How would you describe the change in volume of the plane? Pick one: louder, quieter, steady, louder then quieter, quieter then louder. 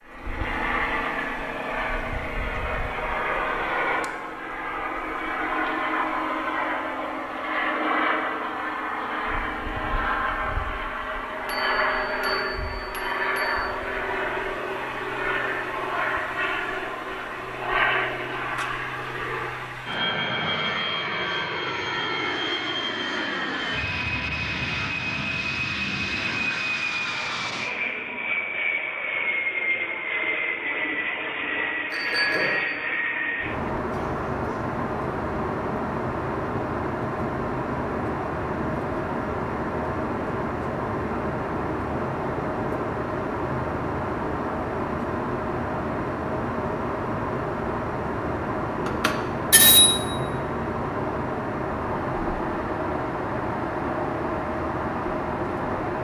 steady.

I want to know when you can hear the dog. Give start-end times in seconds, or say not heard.
not heard.